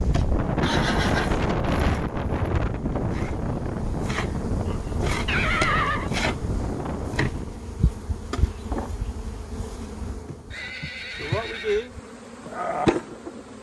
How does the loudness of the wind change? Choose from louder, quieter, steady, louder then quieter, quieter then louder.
quieter.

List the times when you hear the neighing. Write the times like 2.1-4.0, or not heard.
0.6-2.0, 4.7-6.1, 10.5-11.9.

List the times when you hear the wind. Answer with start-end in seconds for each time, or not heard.
0.0-7.6.